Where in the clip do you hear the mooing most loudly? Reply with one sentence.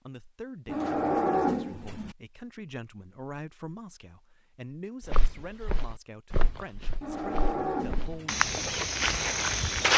The volume of the mooing peaks at 1 second.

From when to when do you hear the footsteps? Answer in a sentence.
The footsteps can be heard from 5.1 to 9.9 s.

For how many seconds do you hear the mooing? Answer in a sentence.
The mooing can be heard for 3 seconds in total.